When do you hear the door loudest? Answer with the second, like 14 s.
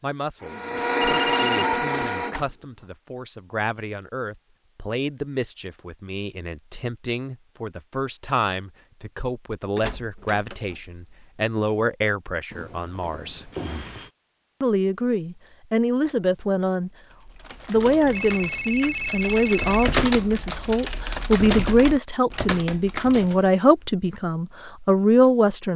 11 s.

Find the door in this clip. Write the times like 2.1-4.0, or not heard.
9.8-11.3.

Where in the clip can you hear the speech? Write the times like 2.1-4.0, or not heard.
0.0-13.5, 14.6-16.9, 17.6-25.7.